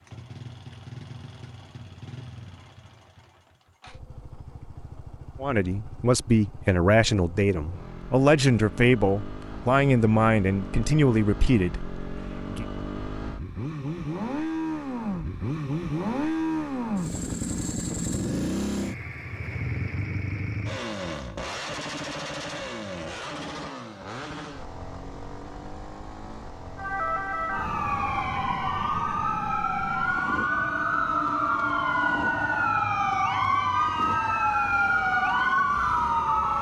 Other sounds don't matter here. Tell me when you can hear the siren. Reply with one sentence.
You can hear the siren from 26.8 to 36.5 s.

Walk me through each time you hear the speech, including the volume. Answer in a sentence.
You can hear the speech from 5.4 to 12.7 s, at a steady volume.